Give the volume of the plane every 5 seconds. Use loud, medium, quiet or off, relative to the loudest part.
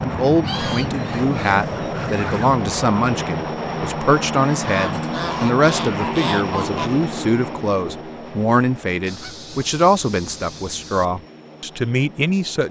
loud, loud, quiet.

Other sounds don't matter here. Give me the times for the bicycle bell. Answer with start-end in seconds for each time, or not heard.
not heard.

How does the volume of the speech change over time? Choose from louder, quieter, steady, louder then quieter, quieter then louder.
steady.